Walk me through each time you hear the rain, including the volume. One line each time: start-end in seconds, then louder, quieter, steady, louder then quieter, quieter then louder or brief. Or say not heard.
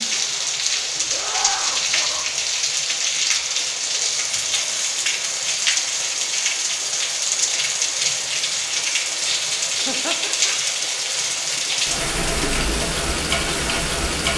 0.0-14.3 steady.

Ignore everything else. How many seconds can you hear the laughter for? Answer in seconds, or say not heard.
2 s.